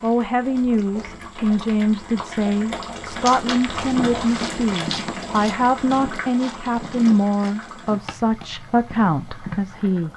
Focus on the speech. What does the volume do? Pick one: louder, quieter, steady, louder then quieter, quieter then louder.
steady.